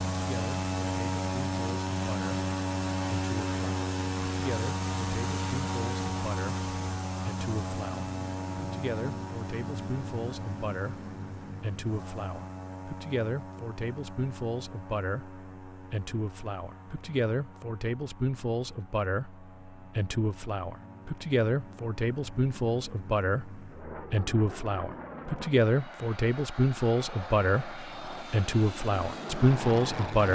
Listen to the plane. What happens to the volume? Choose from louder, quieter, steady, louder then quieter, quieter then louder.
quieter then louder.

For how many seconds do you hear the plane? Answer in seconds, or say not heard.
30 s.